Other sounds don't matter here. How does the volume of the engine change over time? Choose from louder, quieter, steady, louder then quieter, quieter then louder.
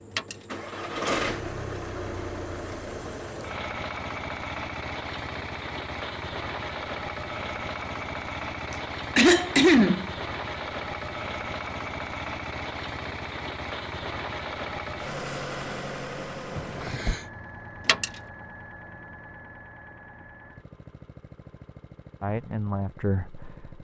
quieter.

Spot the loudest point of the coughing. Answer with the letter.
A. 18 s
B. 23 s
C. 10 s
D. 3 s
C.